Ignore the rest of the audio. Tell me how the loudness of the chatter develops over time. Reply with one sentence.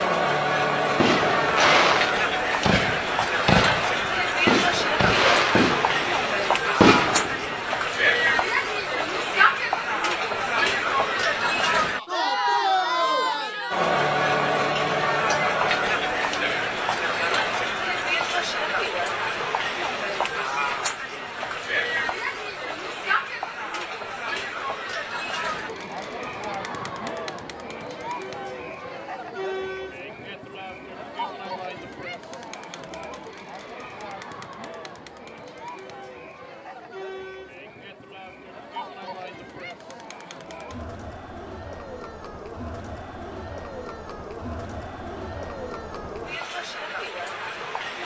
The volume of the chatter goes down.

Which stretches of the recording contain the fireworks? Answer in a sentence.
You can hear the fireworks from 1.0 to 7.7 s.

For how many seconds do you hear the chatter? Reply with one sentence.
You can hear the chatter for 48 seconds altogether.